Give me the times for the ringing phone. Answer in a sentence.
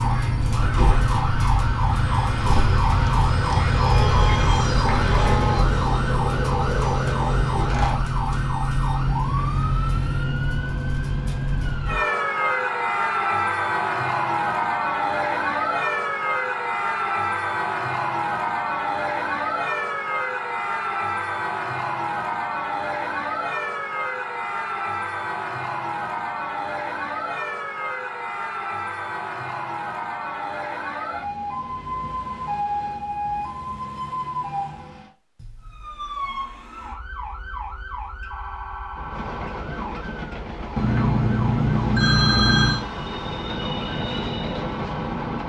You can hear the ringing phone from 40.8 to 42.9 s.